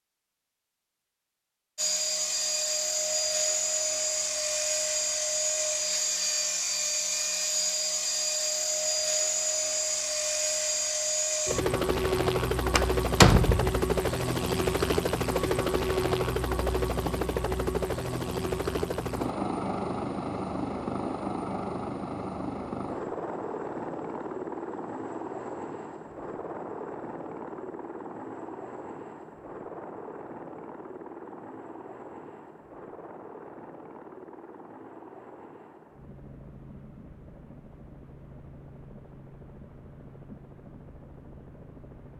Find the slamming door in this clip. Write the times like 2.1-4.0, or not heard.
12.8-13.8.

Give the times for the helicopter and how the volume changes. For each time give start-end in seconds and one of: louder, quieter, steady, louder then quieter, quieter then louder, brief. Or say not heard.
1.8-42.1 quieter.